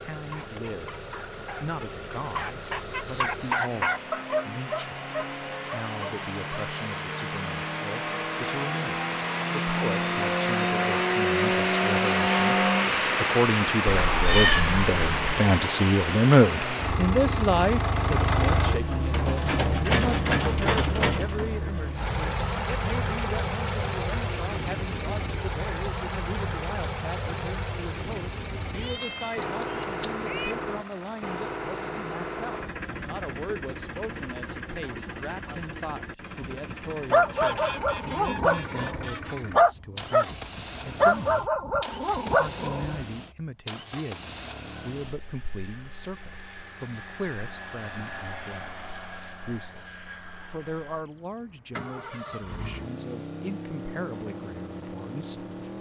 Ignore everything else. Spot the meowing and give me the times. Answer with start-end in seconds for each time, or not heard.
13.8-15.4, 28.8-30.6.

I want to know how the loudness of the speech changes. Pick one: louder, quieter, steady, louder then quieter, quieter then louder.
louder then quieter.